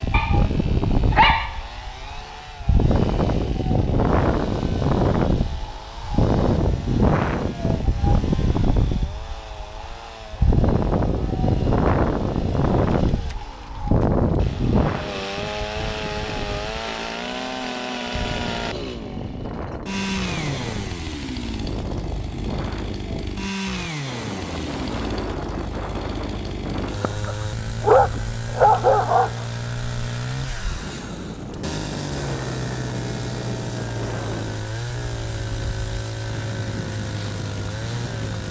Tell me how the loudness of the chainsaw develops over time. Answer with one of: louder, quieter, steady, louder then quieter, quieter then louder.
louder.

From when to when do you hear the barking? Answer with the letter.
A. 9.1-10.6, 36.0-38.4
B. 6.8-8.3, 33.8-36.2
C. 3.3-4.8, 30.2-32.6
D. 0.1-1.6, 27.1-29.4
D.